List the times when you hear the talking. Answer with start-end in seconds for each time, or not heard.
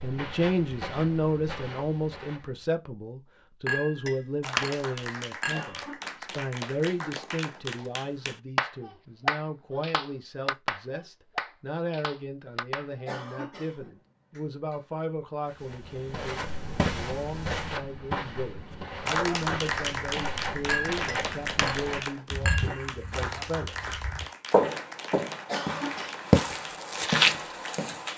0.0-23.8.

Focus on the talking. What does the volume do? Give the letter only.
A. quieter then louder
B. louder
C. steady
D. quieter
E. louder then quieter
D.